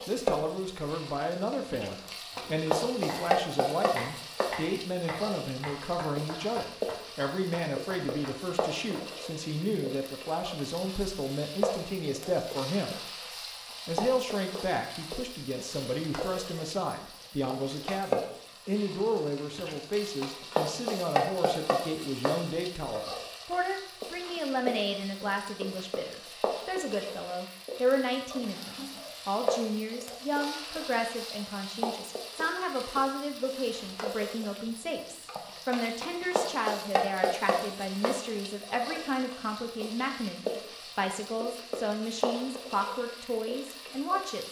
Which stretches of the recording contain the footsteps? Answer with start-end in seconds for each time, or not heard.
not heard.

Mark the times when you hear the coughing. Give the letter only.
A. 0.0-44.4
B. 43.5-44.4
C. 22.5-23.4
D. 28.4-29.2
D.